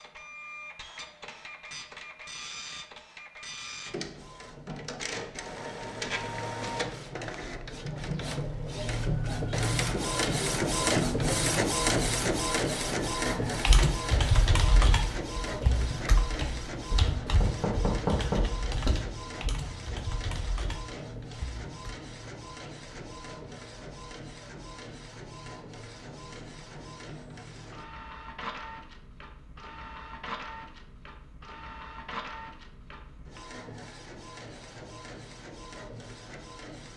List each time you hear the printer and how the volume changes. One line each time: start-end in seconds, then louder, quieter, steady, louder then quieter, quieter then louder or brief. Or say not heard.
0.0-36.9 louder then quieter.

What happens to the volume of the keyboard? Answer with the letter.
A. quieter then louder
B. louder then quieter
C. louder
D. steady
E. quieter
E.